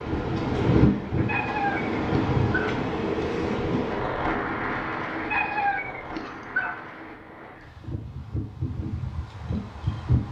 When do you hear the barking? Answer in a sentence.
The barking can be heard from 1.1 to 2.8 s and from 5.2 to 6.8 s.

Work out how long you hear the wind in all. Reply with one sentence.
You can hear the wind for 10 seconds altogether.